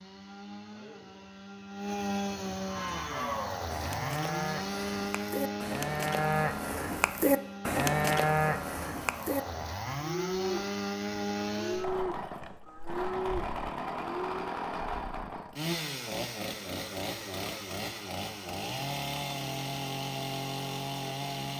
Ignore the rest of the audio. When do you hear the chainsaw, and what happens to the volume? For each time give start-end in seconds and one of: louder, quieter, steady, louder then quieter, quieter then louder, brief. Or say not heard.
0.0-21.5 steady.